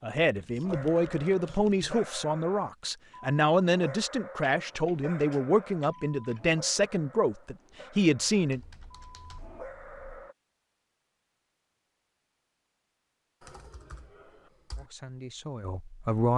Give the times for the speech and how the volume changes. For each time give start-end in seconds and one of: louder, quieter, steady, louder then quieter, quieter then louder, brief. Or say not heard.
0.0-8.6 steady
14.8-16.3 brief.